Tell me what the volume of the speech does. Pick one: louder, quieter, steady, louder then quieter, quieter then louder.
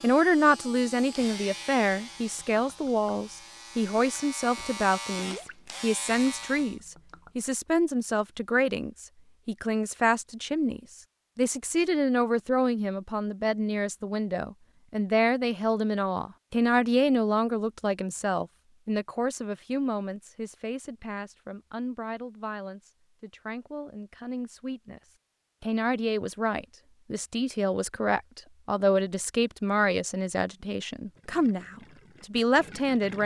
quieter then louder.